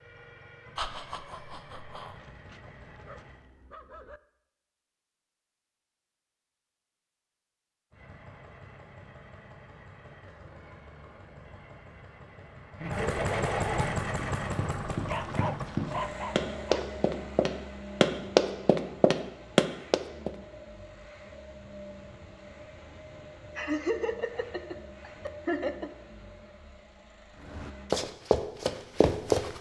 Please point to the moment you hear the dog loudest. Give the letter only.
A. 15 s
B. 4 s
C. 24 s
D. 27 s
A.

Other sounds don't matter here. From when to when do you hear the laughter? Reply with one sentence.
The laughter can be heard from 0.8 to 2.1 s, from 12.8 to 13.9 s and from 23.6 to 25.9 s.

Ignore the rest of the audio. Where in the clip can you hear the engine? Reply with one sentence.
The engine can be heard from 0.0 to 3.4 s and from 7.9 to 27.9 s.